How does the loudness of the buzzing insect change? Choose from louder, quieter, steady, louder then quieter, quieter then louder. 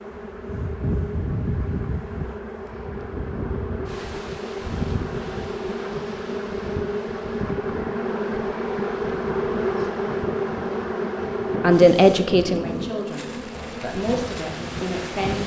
louder then quieter.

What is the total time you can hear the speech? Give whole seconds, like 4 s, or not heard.
4 s.